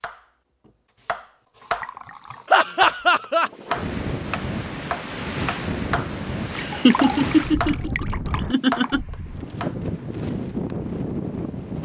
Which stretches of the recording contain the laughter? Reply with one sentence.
You can hear the laughter from 2.5 to 3.5 s and from 6.5 to 9.1 s.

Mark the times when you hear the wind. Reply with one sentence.
You can hear the wind from 3.4 to 11.8 s.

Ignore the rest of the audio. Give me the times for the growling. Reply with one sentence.
You can't hear the growling here.